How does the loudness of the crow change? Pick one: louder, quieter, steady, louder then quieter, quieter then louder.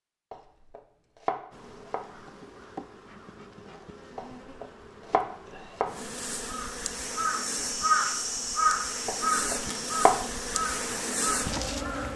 louder then quieter.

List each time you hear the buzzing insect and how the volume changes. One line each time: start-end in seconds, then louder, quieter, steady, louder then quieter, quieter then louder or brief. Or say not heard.
1.5-12.1 louder.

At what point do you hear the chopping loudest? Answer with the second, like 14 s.
10 s.